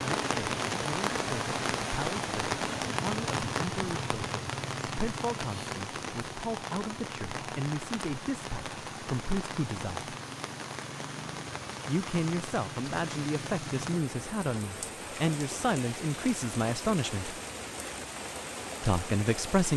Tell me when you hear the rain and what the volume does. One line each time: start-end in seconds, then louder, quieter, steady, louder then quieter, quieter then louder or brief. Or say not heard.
0.0-19.7 quieter.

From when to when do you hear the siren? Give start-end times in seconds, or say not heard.
not heard.